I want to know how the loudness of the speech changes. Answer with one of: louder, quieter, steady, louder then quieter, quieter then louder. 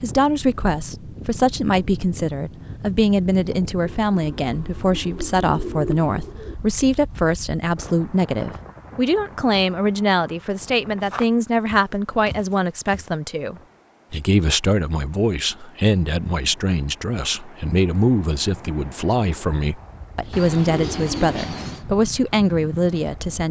steady.